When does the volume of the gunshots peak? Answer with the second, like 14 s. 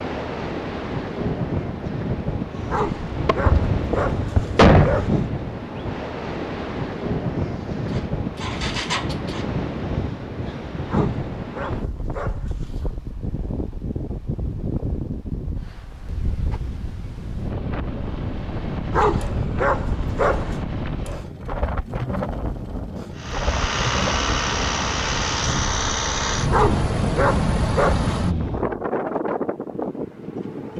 5 s.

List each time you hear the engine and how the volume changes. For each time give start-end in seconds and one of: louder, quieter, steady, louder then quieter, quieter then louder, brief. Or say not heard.
7.3-9.5 brief
23.1-28.9 steady.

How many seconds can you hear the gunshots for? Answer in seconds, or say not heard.
2 s.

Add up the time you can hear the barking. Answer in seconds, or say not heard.
8 s.